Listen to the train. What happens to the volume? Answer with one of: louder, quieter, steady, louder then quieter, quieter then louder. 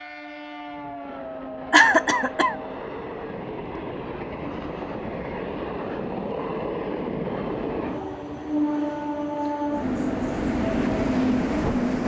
louder.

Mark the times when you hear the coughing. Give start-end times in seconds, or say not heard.
1.7-2.5.